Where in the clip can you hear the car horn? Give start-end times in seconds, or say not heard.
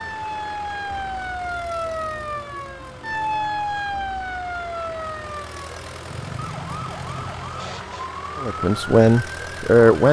not heard.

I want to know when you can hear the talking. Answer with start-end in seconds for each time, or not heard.
8.4-10.0.